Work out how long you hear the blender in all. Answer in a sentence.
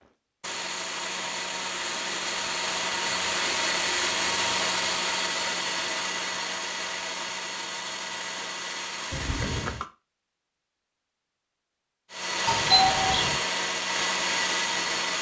You can hear the blender for 13 seconds altogether.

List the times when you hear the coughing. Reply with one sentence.
You can hear the coughing from 9.1 to 9.8 s.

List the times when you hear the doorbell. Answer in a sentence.
You can hear the doorbell from 12.4 to 13.3 s.